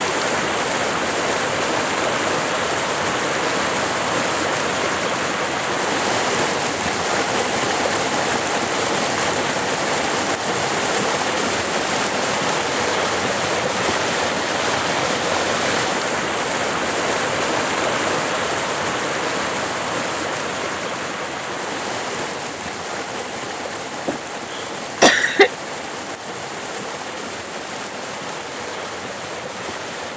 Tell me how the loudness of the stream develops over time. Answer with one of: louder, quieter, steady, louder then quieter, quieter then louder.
quieter.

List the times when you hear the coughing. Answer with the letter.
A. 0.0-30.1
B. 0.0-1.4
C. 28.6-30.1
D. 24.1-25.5
D.